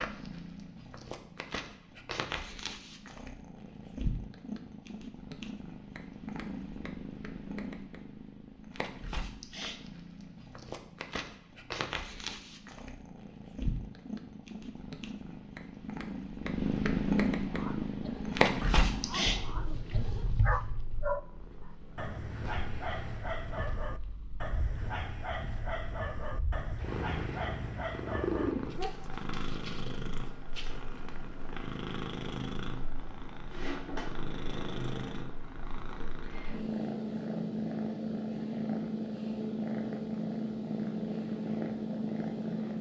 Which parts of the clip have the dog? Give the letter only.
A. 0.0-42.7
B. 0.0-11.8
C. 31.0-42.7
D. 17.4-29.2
D.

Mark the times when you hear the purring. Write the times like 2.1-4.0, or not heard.
0.0-42.7.